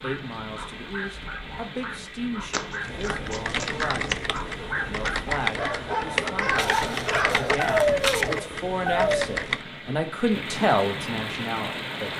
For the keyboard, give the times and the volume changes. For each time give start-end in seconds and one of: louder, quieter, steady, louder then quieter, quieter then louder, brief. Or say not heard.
2.8-9.7 steady.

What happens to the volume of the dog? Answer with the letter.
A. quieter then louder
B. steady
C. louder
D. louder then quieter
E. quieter
C.